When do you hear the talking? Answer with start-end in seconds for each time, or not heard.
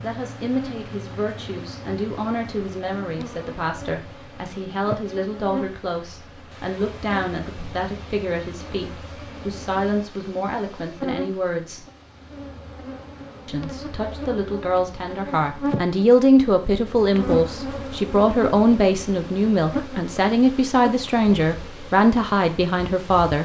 0.0-11.8, 13.4-23.4.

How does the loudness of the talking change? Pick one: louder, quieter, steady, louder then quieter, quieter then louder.
louder.